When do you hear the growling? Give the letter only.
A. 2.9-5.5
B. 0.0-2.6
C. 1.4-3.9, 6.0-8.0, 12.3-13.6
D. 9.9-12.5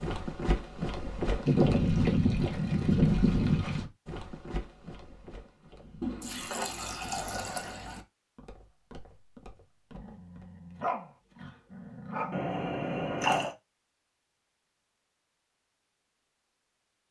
D.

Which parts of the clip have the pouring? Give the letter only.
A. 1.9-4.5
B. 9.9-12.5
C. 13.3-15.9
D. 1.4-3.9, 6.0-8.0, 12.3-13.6
D.